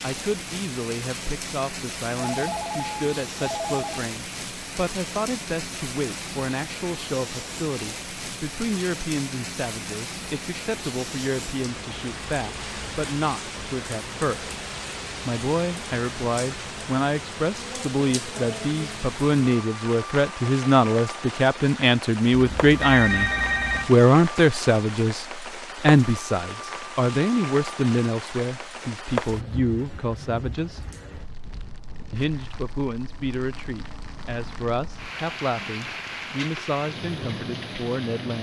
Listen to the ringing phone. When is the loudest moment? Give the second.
23 s.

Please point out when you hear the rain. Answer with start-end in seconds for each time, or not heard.
0.0-38.3.